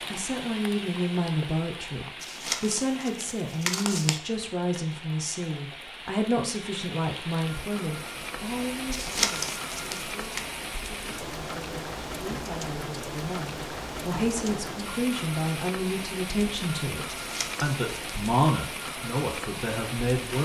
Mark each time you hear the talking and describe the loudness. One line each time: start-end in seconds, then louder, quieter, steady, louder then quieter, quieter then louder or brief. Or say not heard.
0.1-20.3 quieter then louder.